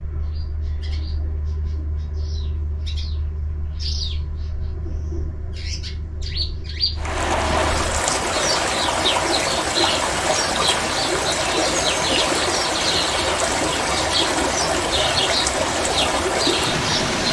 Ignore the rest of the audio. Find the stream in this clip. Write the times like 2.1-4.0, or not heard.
7.0-17.2.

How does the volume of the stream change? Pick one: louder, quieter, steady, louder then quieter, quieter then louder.
steady.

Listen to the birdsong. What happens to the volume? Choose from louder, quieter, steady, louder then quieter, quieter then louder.
louder.